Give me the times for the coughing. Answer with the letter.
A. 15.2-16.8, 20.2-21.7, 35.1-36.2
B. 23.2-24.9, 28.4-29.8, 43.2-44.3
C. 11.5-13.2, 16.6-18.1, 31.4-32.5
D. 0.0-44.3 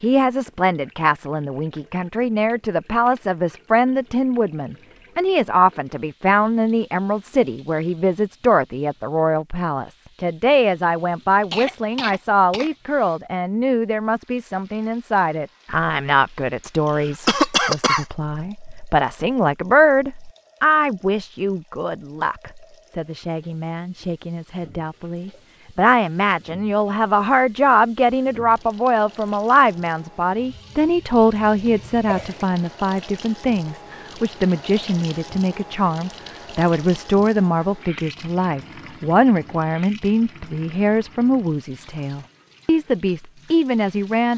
C.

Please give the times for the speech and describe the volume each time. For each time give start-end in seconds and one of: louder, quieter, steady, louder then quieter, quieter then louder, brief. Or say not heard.
0.0-44.3 steady.